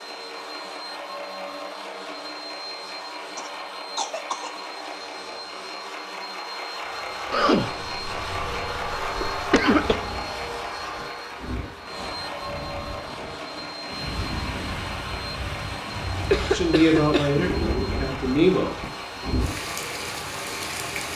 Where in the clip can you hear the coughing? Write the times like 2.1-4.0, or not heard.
3.4-4.5, 7.3-9.9, 16.3-17.4.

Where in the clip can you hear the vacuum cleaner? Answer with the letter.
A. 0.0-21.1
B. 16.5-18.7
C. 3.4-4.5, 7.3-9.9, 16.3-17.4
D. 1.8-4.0
A.